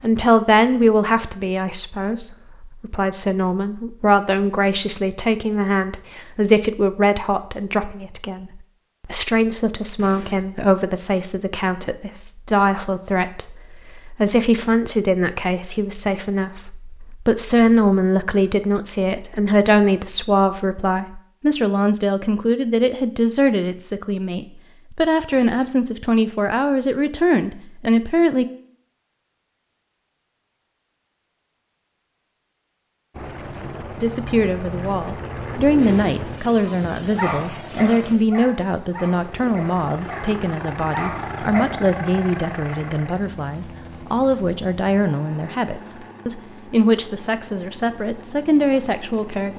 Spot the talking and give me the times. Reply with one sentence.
The talking can be heard from 0.0 to 28.4 s and from 34.0 to 49.5 s.